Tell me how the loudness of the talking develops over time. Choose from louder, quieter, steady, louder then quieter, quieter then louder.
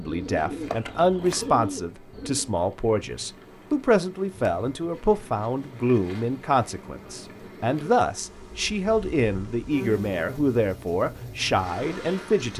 steady.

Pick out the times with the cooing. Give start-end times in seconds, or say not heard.
0.0-2.5.